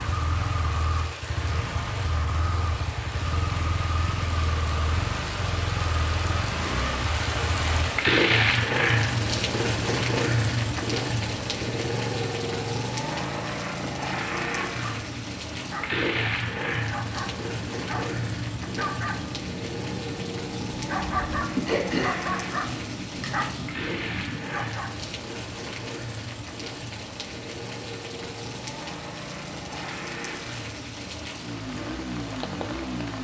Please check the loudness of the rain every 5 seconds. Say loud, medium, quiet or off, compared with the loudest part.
medium, loud, loud, medium, medium, medium, medium.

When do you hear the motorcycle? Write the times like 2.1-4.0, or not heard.
0.0-33.1.